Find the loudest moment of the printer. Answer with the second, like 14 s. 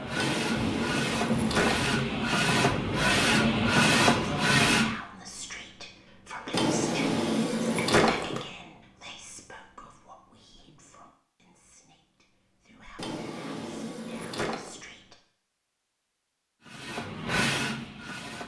4 s.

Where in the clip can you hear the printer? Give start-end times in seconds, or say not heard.
0.0-5.0, 16.6-18.4.